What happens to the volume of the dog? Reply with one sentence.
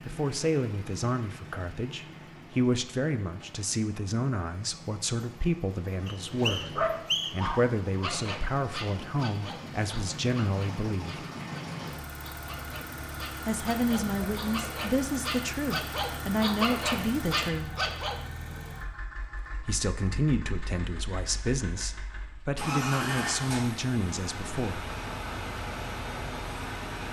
The loudness of the dog goes down, then up.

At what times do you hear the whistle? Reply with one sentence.
The whistle can be heard from 6.0 to 7.5 s.